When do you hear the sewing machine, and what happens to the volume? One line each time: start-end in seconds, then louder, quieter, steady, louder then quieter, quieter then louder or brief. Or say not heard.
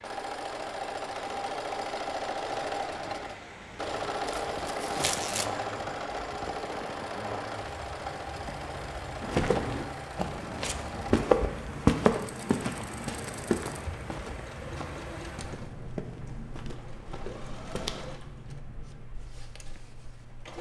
0.0-20.5 quieter.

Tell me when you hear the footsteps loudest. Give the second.
12 s.